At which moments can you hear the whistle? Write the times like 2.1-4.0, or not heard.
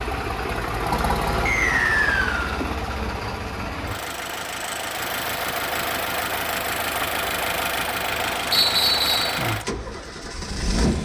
1.4-2.5, 8.5-9.3.